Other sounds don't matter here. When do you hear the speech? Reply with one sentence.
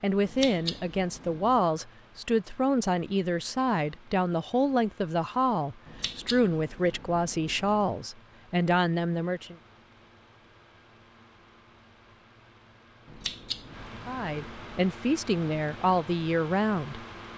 The speech can be heard from 0.0 to 9.6 s and from 14.1 to 17.1 s.